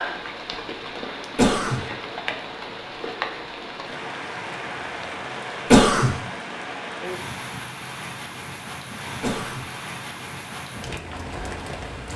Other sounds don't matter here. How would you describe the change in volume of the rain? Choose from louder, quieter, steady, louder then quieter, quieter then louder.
steady.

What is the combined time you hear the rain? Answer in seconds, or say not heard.
12 s.